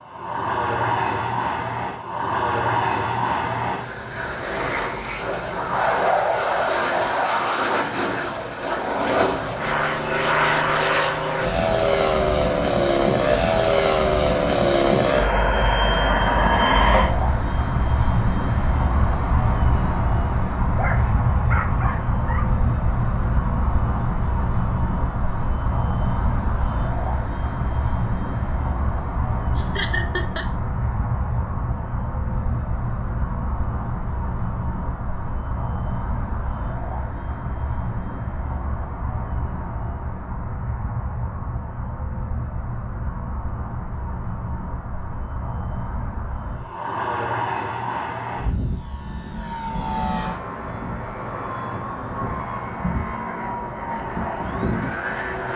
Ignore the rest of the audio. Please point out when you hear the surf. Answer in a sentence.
The surf can't be heard in this clip.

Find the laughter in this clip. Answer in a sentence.
You can hear the laughter from 29.6 to 30.4 s.